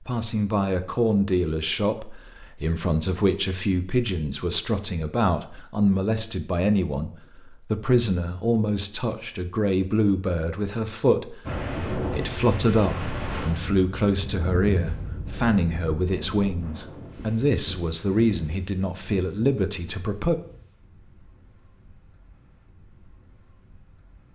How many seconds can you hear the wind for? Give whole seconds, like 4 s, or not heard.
13 s.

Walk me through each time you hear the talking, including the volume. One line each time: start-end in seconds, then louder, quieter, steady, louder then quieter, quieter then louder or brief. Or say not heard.
0.0-20.4 steady.